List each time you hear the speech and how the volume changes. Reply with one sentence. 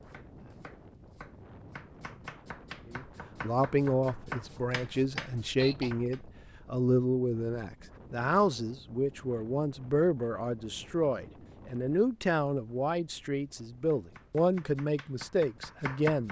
You can hear the speech from 2.9 to 16.2 s, at a steady volume.